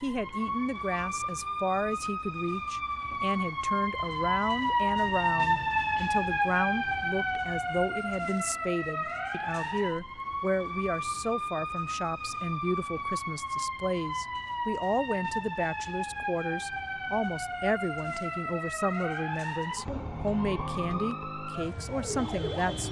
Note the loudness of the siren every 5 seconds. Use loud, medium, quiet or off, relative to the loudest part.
loud, loud, medium, medium, medium.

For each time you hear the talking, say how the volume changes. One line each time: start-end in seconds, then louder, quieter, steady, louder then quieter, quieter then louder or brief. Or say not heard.
0.0-22.8 steady.